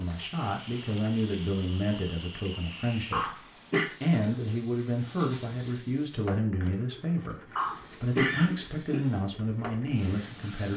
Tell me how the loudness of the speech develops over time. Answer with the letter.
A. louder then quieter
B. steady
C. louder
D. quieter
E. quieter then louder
B.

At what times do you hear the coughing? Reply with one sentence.
You can hear the coughing from 3.1 to 3.9 s and from 7.5 to 9.0 s.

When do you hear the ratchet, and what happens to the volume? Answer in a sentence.
You can't hear the ratchet here.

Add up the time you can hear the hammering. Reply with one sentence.
You can't hear the hammering here.